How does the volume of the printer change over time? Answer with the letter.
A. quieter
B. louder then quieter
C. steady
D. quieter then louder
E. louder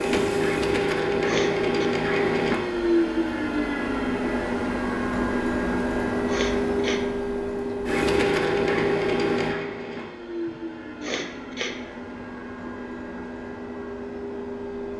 A.